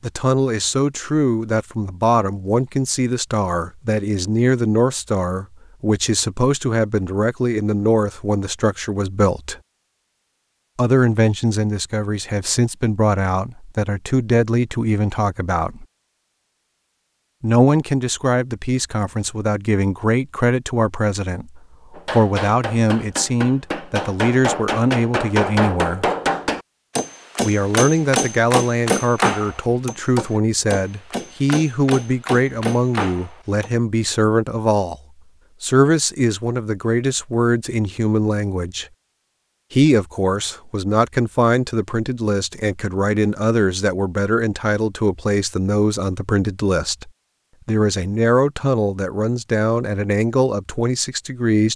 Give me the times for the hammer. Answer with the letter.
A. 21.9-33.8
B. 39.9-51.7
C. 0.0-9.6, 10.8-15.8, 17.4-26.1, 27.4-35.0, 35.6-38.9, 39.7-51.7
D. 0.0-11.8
A.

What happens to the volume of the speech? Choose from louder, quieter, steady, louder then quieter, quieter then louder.
steady.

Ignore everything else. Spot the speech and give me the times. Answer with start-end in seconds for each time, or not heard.
0.0-9.6, 10.8-15.8, 17.4-26.1, 27.4-35.0, 35.6-38.9, 39.7-51.7.